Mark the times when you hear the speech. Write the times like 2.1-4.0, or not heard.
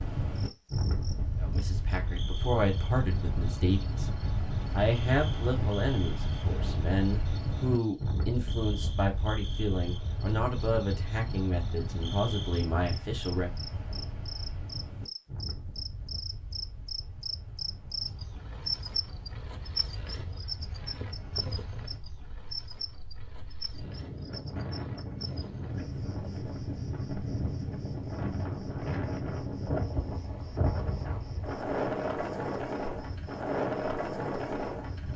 1.4-4.0, 4.7-13.5.